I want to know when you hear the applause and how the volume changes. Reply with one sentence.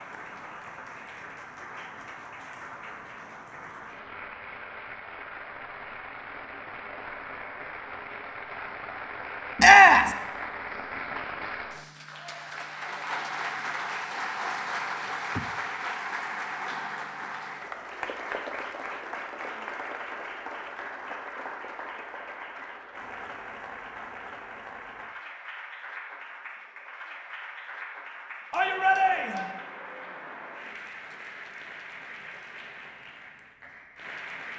You can hear the applause from 0.0 to 34.5 s, getting louder then quieter.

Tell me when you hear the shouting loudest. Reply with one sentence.
The volume of the shouting peaks at 10 seconds.